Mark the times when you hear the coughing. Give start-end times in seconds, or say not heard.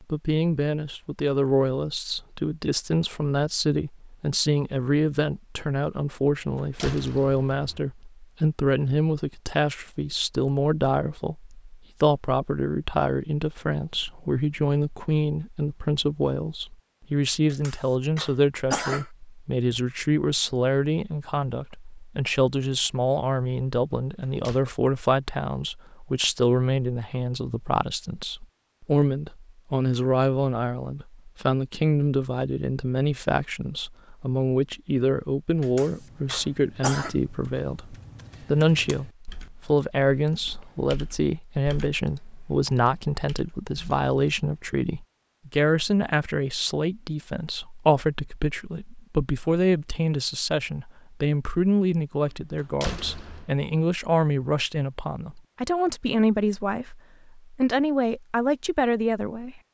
17.5-19.1, 35.6-37.1.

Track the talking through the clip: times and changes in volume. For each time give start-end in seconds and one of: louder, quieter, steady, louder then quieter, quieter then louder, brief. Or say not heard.
0.0-59.6 steady.